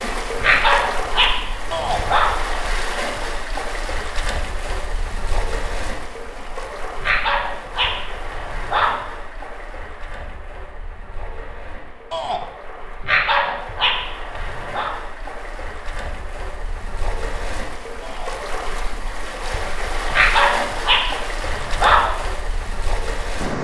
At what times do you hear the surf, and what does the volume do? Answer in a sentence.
You can hear the surf from 0.0 to 23.6 s, getting quieter then louder.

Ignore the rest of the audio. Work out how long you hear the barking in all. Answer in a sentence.
The barking can be heard for 8 seconds in total.